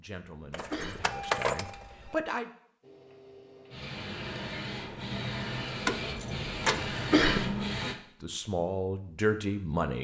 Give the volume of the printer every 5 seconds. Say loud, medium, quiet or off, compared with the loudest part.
medium, loud.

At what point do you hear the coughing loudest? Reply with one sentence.
The loudest moment of the coughing is at 7 seconds.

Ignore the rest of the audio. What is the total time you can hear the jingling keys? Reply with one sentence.
You can hear the jingling keys for 3 seconds altogether.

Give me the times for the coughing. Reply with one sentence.
The coughing can be heard from 0.5 to 1.3 s and from 6.8 to 7.5 s.